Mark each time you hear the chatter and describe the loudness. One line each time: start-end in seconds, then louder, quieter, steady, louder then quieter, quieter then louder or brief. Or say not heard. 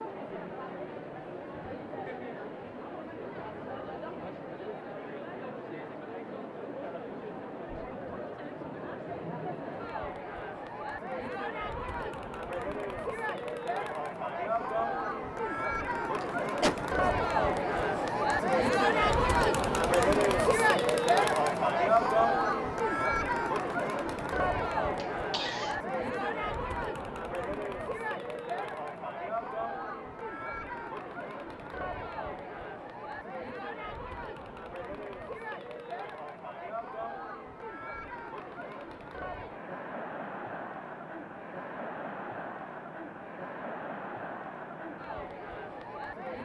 0.0-46.3 louder then quieter.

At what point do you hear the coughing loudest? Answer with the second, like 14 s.
17 s.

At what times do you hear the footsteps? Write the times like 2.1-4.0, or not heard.
not heard.